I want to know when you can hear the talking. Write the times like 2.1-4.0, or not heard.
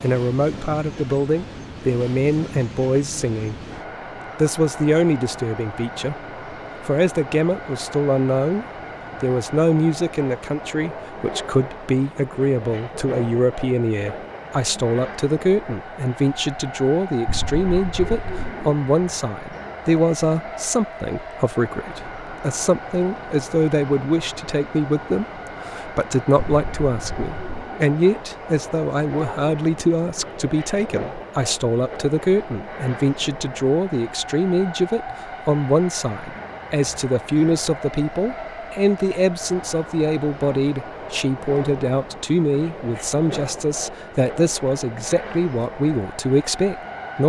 0.0-3.5, 4.3-6.2, 6.8-47.2.